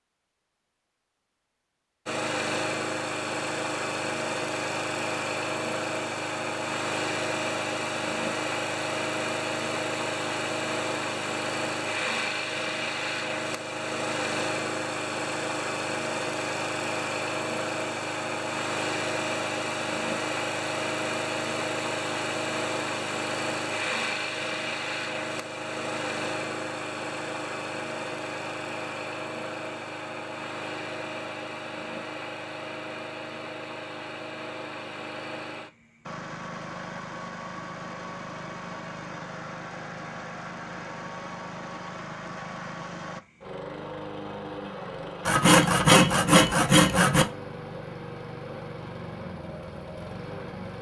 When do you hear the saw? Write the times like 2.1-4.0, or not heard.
45.2-47.2.